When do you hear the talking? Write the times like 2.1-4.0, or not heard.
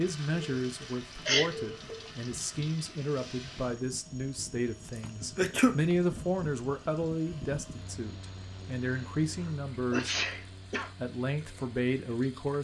0.0-10.2, 11.0-12.5.